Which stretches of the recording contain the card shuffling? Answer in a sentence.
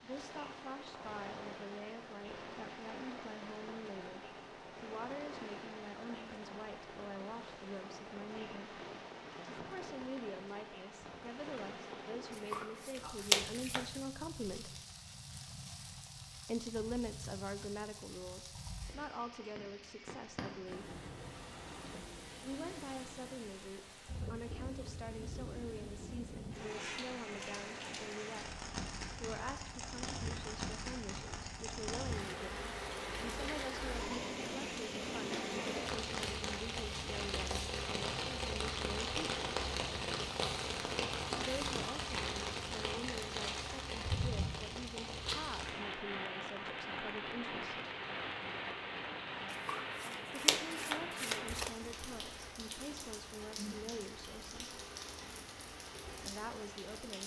You can hear the card shuffling from 12.3 to 14.0 s and from 49.5 to 51.7 s.